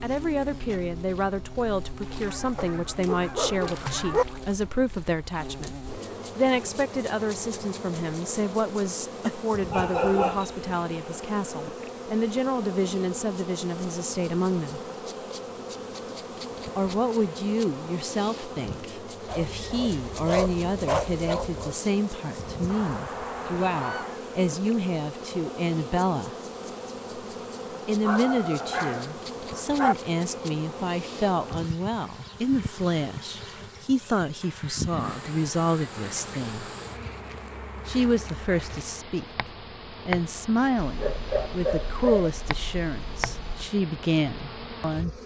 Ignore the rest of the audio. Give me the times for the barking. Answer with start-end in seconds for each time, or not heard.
2.5-4.2, 9.2-10.5, 19.2-21.8, 28.0-29.9, 40.8-43.7.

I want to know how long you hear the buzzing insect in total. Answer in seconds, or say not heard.
45 s.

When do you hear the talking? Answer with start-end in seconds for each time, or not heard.
0.0-14.8, 16.8-26.4, 27.9-36.7, 37.9-45.1.